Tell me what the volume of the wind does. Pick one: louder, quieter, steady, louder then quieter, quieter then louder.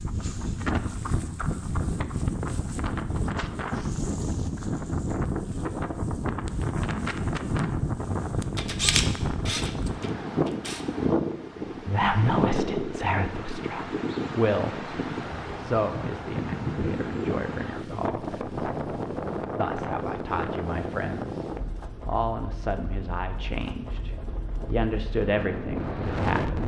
quieter.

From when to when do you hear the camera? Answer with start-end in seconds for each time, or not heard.
8.6-10.8.